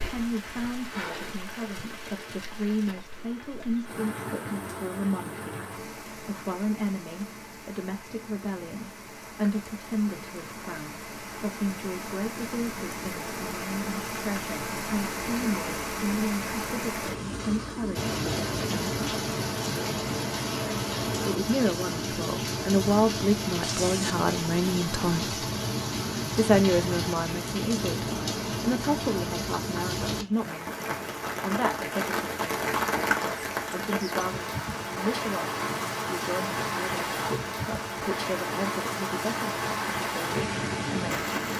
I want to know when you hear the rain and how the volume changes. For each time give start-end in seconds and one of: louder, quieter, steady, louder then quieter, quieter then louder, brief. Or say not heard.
0.0-41.5 louder.